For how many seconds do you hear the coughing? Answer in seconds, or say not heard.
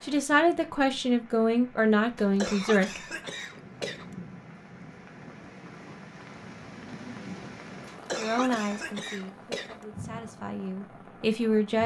4 s.